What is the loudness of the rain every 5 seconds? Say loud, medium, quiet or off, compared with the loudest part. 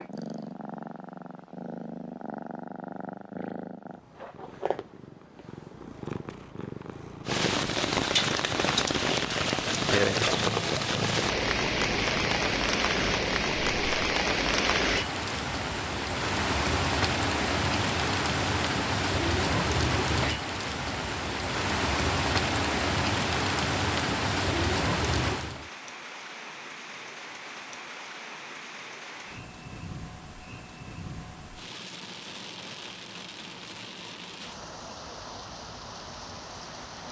off, loud, loud, loud, loud, medium, quiet, quiet.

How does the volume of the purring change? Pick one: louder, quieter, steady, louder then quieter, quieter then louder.
steady.